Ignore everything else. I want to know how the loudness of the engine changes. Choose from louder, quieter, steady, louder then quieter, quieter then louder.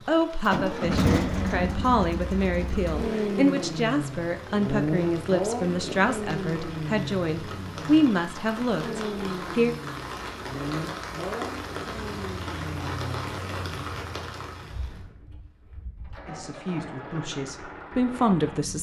quieter.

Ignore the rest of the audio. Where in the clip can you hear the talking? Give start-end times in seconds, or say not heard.
0.1-9.8, 16.2-18.7.